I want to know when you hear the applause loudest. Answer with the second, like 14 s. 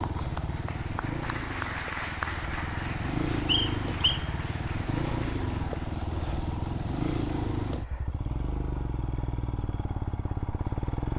2 s.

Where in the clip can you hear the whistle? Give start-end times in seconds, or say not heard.
3.5-4.2.